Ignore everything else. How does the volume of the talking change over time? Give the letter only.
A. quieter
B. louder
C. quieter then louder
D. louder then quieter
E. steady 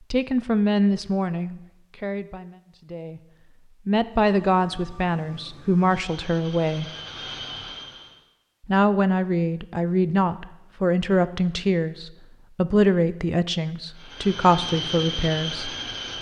E.